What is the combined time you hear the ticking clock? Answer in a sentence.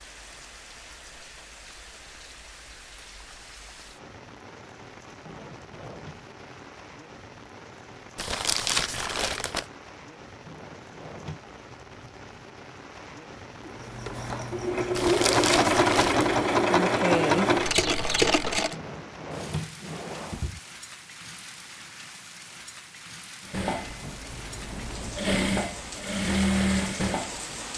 You can't hear the ticking clock here.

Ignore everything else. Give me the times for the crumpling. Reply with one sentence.
The crumpling can be heard from 8.2 to 9.7 s and from 14.9 to 16.4 s.